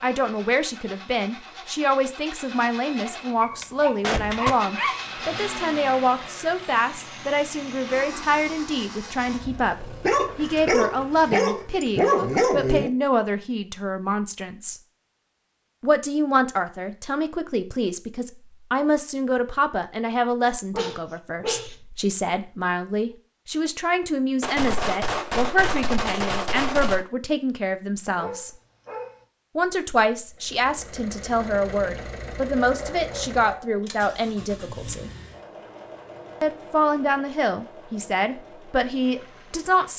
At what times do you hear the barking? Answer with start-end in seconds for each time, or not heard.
3.4-5.0, 10.0-12.9, 20.8-21.7, 28.1-29.2, 32.6-33.8.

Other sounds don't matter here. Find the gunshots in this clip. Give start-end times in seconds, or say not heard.
2.8-4.5, 24.4-27.1.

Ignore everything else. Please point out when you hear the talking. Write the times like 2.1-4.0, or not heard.
0.0-14.8, 15.8-28.5, 29.6-35.1, 36.4-39.9.